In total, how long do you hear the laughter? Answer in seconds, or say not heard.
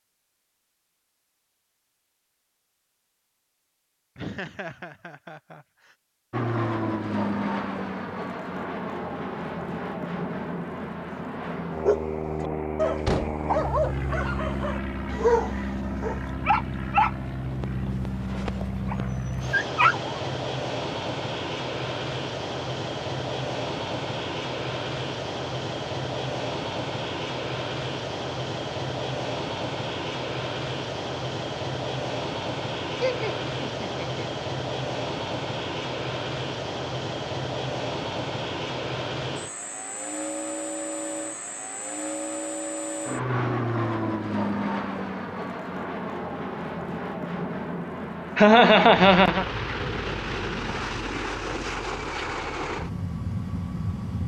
4 s.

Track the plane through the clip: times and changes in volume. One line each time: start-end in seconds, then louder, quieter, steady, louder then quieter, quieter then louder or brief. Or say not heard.
6.3-54.2 steady.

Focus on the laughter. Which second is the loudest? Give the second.
49 s.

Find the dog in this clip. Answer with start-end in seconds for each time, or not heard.
11.8-20.1.